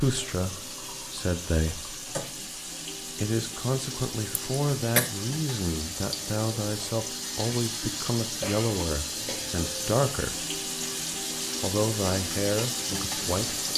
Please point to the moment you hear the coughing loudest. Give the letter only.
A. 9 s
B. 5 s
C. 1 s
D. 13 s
B.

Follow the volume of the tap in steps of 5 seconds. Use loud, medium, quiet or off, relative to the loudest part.
medium, loud, loud.